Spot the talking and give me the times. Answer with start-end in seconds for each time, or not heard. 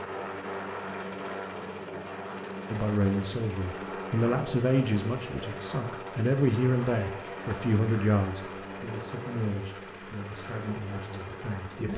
2.7-11.9.